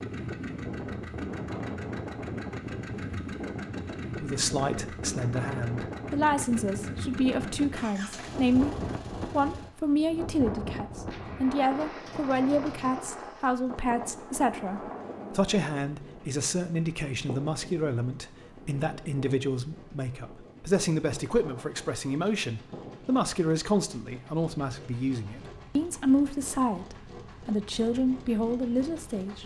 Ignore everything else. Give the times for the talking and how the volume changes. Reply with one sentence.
The talking can be heard from 4.2 to 29.4 s, at a steady volume.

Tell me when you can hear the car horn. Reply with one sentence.
You can't hear the car horn here.